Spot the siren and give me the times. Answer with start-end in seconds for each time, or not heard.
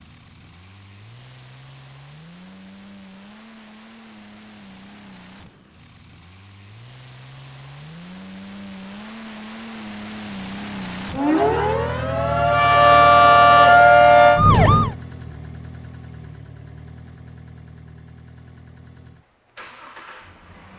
11.2-14.9.